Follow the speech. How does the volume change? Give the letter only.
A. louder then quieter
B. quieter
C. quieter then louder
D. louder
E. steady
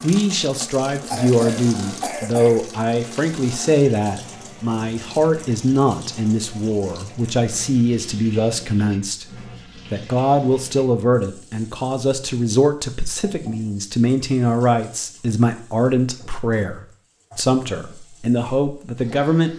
E.